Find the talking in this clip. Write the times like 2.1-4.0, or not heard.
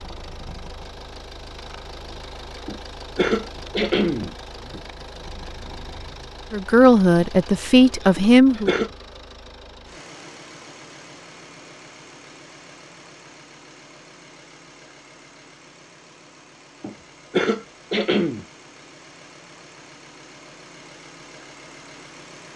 6.5-8.7.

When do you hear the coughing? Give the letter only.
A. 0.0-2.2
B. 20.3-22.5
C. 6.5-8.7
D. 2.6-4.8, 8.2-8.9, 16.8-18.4
D.